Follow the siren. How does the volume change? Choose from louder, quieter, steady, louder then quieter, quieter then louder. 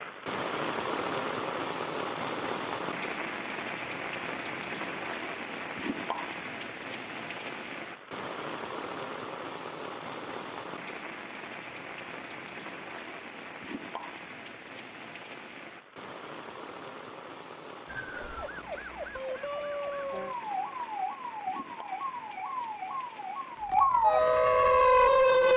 louder.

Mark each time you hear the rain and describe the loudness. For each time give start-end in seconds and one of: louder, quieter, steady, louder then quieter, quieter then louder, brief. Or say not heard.
0.0-25.5 quieter.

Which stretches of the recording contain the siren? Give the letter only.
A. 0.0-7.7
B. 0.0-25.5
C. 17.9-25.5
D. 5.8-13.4
C.